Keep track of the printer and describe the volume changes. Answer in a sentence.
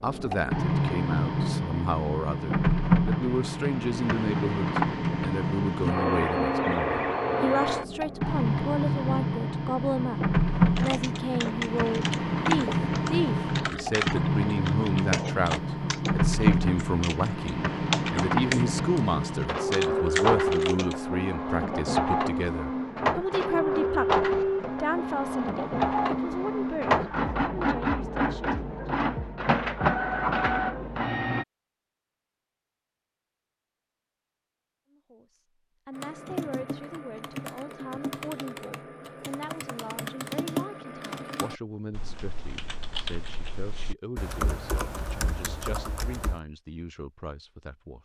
The loudness of the printer stays about the same.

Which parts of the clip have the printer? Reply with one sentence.
The printer can be heard from 0.0 to 31.4 s.